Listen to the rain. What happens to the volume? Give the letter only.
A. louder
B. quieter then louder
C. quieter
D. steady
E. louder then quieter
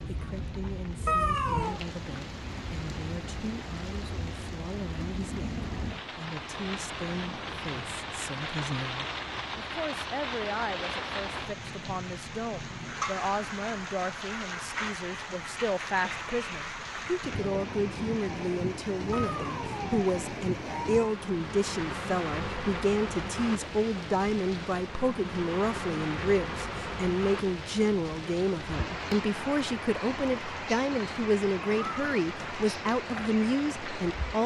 D.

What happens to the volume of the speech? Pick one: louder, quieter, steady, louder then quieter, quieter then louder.
louder.